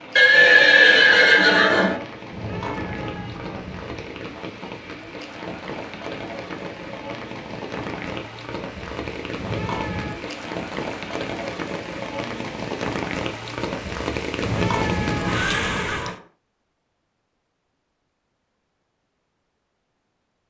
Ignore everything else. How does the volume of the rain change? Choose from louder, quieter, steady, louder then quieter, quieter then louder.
louder.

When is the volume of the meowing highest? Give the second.
15 s.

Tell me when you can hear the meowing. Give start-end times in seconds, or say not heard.
2.3-4.0, 9.3-10.2, 14.4-16.1.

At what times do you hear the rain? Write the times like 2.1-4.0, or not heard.
0.0-16.1.